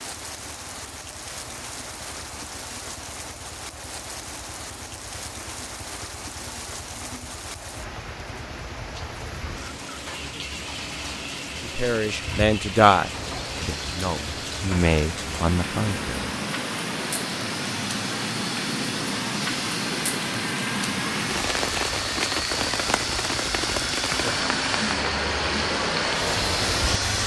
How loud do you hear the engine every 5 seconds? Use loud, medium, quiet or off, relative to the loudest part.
quiet, quiet, medium, medium, loud, loud.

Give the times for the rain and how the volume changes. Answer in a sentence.
You can hear the rain from 0.0 to 27.2 s, getting louder.